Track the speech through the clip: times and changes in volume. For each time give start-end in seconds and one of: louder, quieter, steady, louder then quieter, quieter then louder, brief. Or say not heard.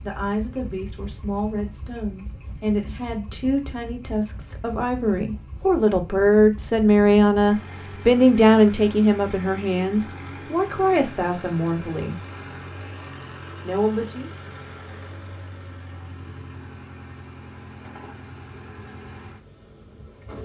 0.0-12.2 louder then quieter
13.6-14.3 brief.